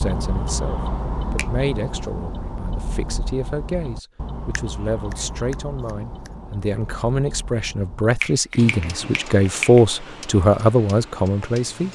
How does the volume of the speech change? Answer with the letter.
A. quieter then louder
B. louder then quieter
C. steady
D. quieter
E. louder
E.